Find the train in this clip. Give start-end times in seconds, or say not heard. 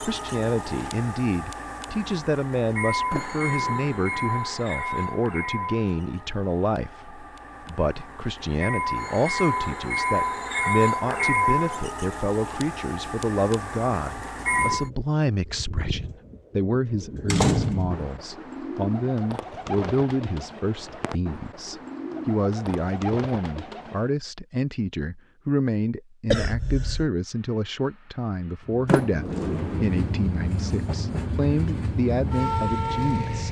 0.0-14.9, 27.2-33.4.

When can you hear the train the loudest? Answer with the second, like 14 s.
11 s.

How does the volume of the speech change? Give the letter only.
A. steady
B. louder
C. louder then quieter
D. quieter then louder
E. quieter
A.